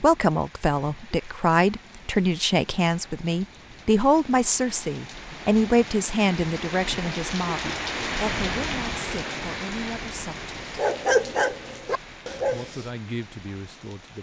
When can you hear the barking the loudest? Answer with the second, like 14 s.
11 s.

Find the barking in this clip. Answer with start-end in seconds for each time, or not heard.
10.8-12.8.